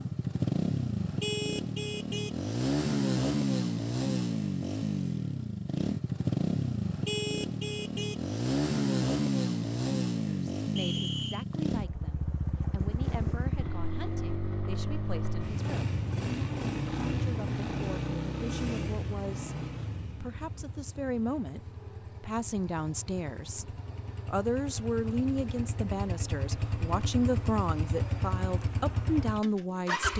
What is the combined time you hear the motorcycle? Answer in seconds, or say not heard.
30 s.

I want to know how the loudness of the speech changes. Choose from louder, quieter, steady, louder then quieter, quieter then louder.
louder.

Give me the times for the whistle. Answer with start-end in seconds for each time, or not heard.
10.8-11.4.